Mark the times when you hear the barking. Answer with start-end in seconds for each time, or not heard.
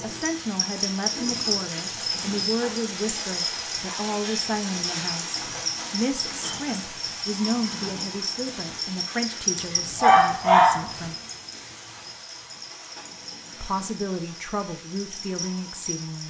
9.6-10.8.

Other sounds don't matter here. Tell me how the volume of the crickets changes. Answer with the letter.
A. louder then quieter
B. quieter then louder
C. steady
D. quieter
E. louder
D.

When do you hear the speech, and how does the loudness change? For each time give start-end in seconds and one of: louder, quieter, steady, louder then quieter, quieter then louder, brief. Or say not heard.
0.0-11.2 steady
13.6-16.2 brief.